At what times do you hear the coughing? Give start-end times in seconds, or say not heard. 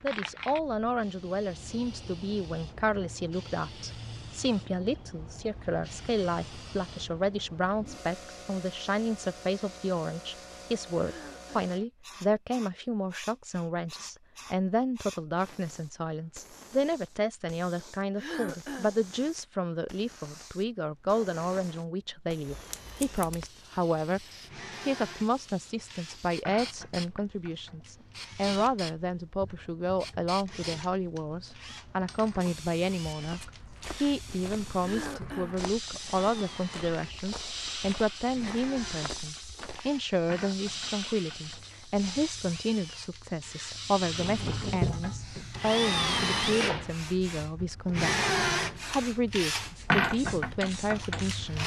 11.0-11.8, 18.1-19.0, 34.8-35.6.